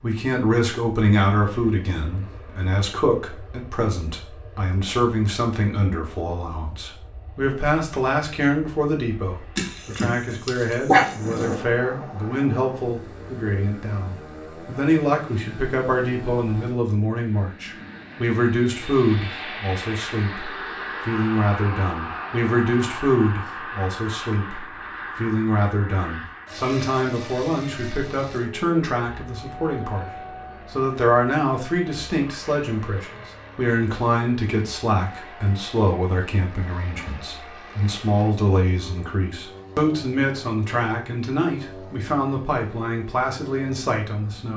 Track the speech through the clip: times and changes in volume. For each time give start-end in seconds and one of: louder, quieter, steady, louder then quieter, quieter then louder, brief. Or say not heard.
0.0-44.5 steady.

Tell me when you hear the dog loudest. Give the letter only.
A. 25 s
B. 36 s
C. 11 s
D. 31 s
C.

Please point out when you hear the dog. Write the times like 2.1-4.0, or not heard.
9.6-11.6.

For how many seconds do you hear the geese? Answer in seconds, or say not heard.
not heard.